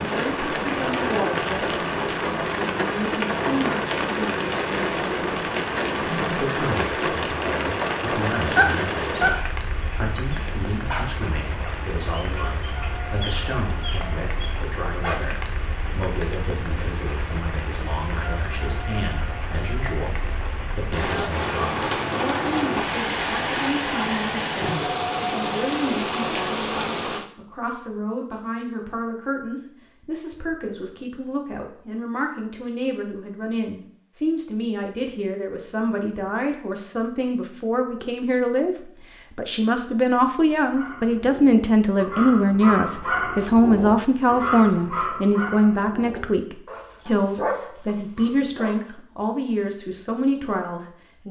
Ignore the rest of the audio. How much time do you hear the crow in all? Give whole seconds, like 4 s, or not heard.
not heard.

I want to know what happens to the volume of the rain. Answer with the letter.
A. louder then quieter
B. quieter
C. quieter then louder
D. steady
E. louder
C.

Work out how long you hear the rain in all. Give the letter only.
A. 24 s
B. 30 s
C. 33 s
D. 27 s
D.